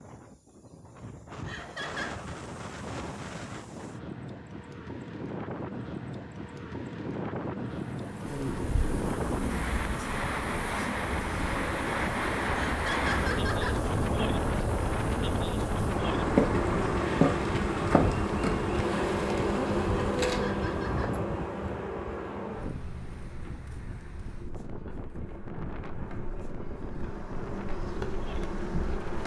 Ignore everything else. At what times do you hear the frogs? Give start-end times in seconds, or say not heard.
not heard.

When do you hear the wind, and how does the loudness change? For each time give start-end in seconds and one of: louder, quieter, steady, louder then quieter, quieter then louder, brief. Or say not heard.
0.0-29.2 louder then quieter.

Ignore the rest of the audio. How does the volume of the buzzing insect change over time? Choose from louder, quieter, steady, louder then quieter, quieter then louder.
louder then quieter.